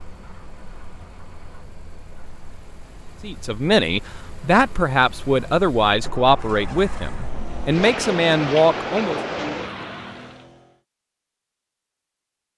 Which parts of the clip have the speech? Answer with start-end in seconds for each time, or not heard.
3.2-9.2.